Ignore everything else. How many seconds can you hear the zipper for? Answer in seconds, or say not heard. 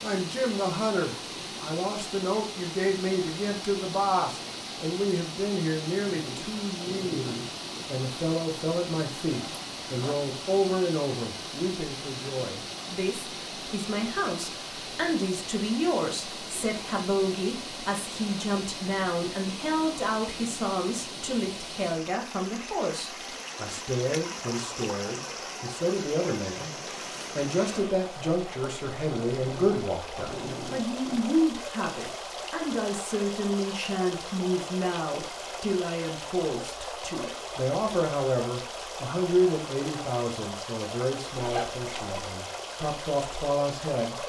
3 s.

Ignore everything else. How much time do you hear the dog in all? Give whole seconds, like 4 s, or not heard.
4 s.